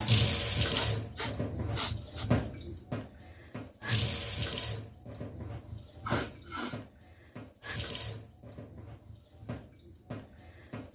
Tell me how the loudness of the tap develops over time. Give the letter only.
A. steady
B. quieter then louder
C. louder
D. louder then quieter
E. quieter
E.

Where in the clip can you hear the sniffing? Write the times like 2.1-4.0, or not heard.
0.7-2.3, 6.0-6.8.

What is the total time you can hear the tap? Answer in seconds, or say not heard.
11 s.